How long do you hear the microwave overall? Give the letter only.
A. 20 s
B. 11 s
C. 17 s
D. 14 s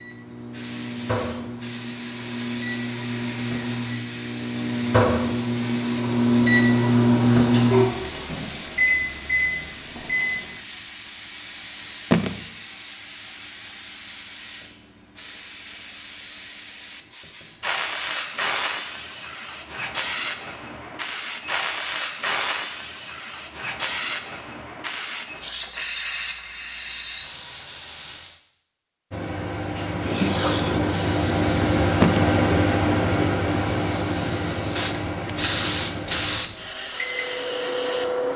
A.